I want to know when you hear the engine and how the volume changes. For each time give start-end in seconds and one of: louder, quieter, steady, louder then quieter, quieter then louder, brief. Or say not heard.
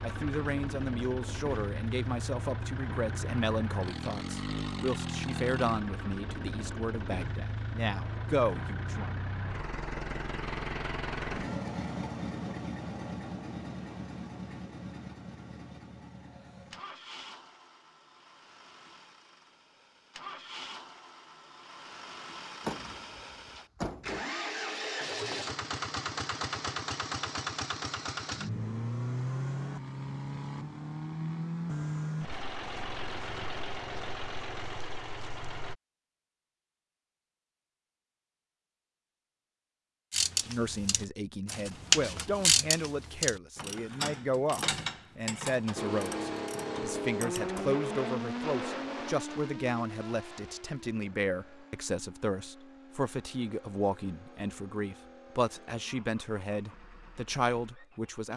0.0-35.8 quieter then louder
45.8-58.3 quieter.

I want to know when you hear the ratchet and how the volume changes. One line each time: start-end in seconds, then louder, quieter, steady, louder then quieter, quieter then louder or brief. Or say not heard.
40.1-47.6 louder then quieter.